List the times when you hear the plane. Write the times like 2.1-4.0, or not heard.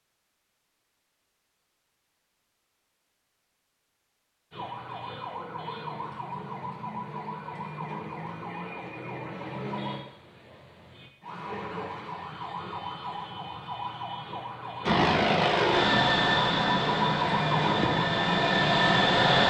14.8-19.4.